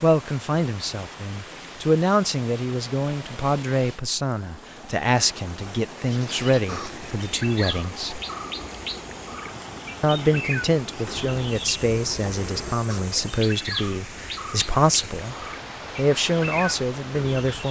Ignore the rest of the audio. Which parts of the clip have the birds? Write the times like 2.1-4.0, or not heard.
6.0-17.6.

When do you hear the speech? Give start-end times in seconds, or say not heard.
0.0-8.2, 10.0-15.3, 15.9-17.6.